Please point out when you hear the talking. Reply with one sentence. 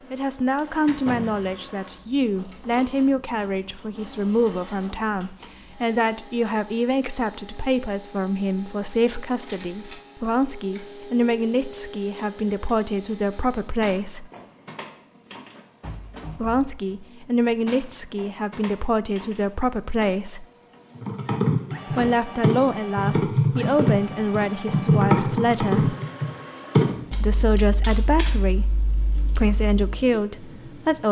You can hear the talking from 0.1 to 14.3 s, from 16.4 to 20.4 s, from 21.9 to 25.9 s and from 27.2 to 31.0 s.